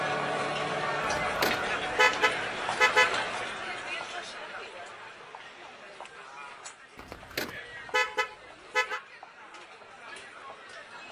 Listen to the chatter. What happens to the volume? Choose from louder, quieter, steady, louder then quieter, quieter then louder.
quieter.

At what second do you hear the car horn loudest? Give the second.
3 s.